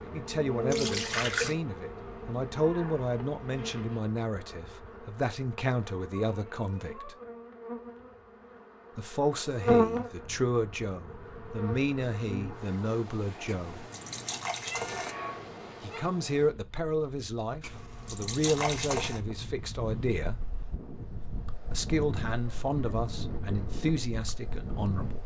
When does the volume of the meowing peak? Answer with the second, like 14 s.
15 s.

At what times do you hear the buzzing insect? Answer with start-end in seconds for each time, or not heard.
0.0-13.1.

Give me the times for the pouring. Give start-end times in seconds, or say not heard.
0.7-1.6, 13.4-15.2, 17.6-19.2.